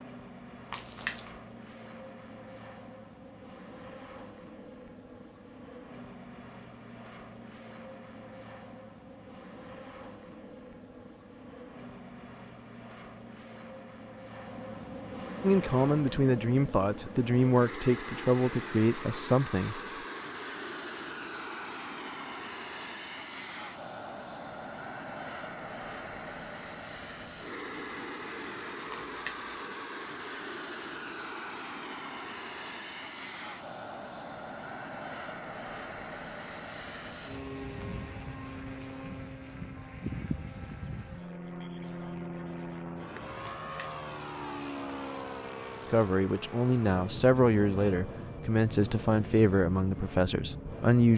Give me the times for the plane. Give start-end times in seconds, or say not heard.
0.0-51.1.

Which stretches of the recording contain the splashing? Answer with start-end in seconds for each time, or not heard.
0.7-1.4, 28.9-29.6, 43.5-44.0.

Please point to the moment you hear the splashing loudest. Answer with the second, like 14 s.
1 s.